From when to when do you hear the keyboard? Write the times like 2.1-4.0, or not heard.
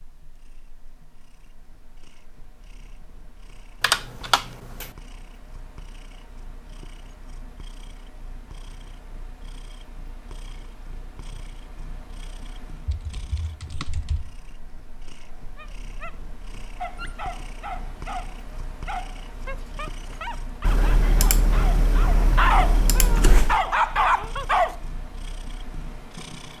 3.8-4.8, 12.8-14.4, 20.6-23.6.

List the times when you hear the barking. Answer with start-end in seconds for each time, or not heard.
15.3-24.8.